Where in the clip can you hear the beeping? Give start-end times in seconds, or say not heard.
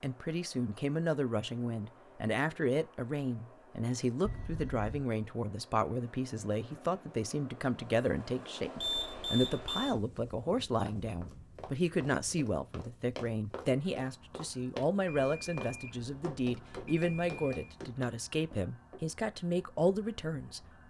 4.2-5.0, 8.8-9.9, 15.1-17.8.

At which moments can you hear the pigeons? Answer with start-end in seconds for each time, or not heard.
not heard.